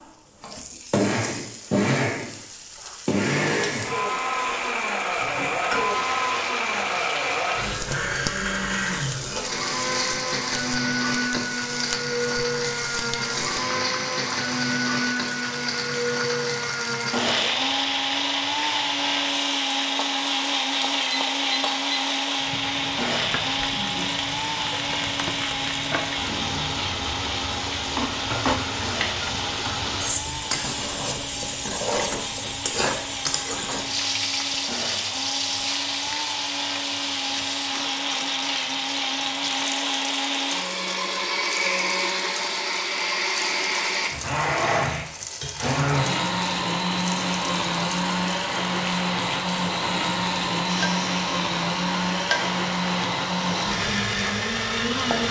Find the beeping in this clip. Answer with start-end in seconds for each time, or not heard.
21.1-22.0.